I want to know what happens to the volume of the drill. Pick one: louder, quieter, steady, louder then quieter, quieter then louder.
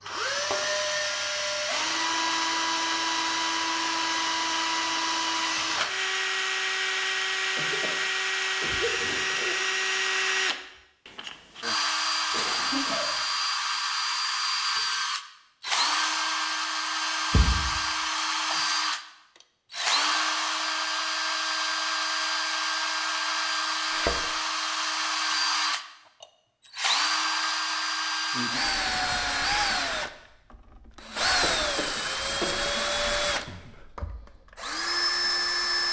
steady.